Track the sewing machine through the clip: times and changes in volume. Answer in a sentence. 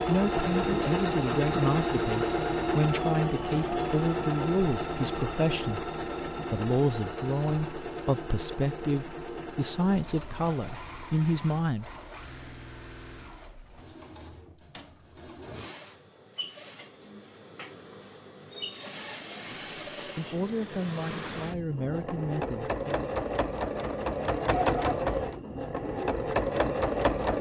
The sewing machine can be heard from 0.0 to 27.3 s, getting quieter then louder.